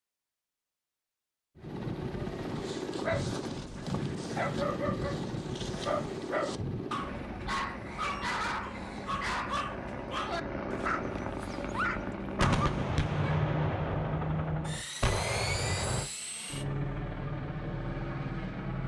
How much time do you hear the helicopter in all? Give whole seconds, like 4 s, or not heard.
17 s.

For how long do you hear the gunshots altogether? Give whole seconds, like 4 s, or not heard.
4 s.